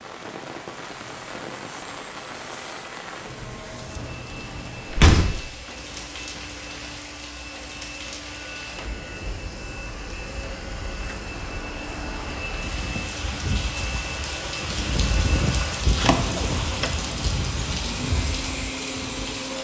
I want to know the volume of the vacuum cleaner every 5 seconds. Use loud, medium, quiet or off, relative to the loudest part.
medium, medium, loud, loud.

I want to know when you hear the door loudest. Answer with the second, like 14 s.
5 s.